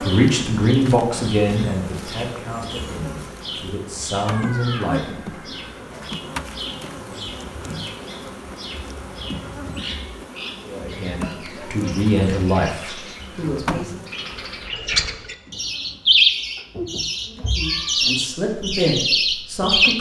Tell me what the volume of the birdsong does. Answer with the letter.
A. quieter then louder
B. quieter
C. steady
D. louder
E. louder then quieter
D.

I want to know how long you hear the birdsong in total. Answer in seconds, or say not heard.
20 s.